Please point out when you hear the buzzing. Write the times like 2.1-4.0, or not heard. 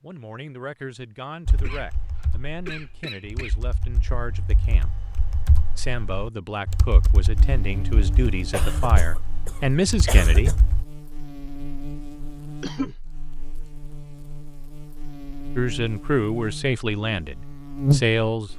7.3-18.5.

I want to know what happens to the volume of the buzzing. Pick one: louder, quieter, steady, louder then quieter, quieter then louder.
louder.